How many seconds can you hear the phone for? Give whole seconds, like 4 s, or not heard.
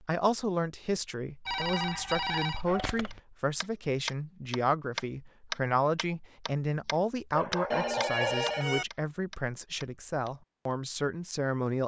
3 s.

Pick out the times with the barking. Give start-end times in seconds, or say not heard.
1.7-3.0, 7.3-8.4.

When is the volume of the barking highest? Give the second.
8 s.